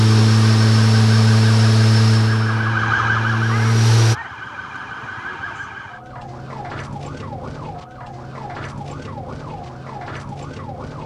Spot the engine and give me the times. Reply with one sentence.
The engine can be heard from 0.0 to 4.2 s.